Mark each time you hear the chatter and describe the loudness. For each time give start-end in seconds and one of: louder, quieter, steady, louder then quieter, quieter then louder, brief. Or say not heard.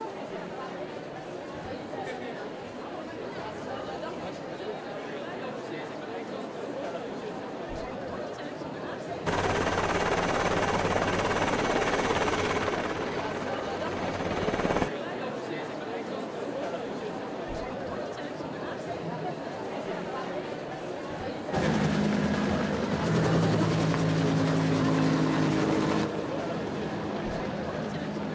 0.0-28.3 steady.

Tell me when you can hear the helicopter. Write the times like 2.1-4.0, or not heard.
9.2-14.9, 21.5-28.3.